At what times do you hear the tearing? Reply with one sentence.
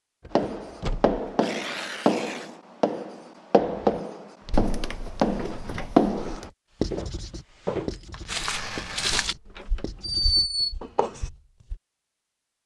The tearing can be heard from 1.3 to 2.6 s and from 8.1 to 9.2 s.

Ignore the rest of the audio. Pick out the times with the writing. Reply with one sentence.
You can hear the writing from 0.3 to 11.3 s.